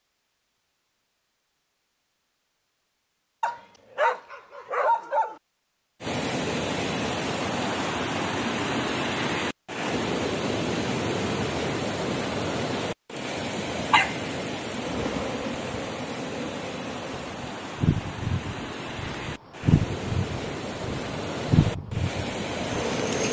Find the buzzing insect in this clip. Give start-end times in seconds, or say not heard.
14.8-23.2.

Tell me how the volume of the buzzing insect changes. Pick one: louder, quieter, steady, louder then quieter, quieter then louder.
louder.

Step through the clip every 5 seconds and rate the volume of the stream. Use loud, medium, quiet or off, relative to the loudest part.
off, loud, loud, medium, loud.